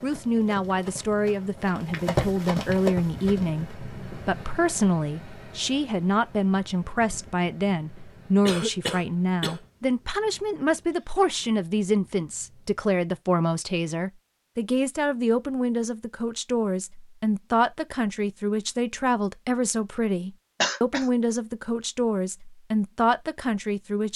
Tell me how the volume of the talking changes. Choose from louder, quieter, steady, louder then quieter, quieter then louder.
steady.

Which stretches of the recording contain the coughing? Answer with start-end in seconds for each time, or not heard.
8.4-9.6, 20.6-21.1.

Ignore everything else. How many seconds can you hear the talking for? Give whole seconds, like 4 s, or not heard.
24 s.